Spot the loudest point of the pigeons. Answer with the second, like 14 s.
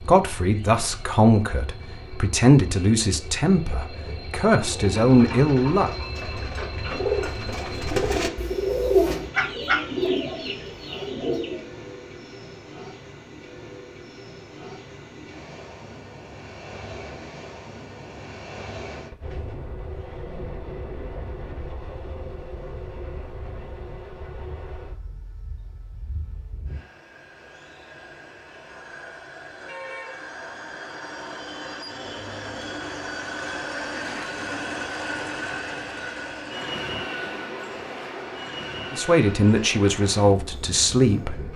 9 s.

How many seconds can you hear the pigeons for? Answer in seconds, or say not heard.
7 s.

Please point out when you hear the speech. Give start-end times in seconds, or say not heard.
0.1-5.9, 38.9-41.5.